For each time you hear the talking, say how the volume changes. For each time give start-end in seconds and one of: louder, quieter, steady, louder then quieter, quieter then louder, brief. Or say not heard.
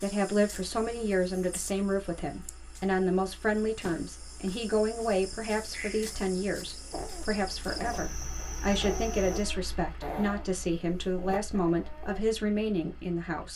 0.0-13.5 steady.